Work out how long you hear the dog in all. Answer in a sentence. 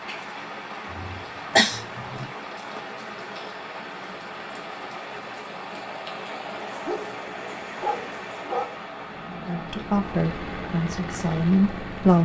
You can hear the dog for 2 seconds altogether.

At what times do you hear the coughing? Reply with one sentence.
The coughing can be heard from 0.9 to 2.3 s.